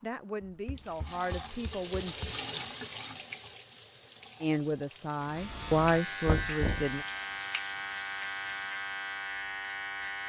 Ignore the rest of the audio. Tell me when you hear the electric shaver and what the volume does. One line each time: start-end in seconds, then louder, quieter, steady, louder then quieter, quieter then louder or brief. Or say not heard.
5.2-10.2 steady.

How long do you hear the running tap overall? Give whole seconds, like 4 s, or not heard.
9 s.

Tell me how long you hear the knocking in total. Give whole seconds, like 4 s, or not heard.
3 s.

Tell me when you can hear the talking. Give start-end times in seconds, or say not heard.
0.0-2.3, 4.4-7.0.